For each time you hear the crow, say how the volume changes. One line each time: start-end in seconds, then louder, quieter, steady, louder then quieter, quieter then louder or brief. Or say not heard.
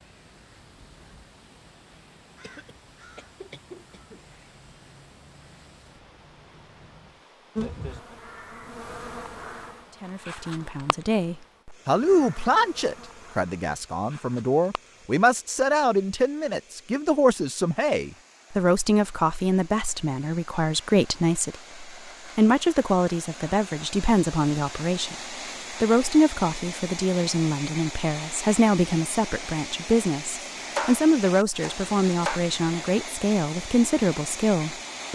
0.0-7.2 steady.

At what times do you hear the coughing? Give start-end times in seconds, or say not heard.
2.4-4.2.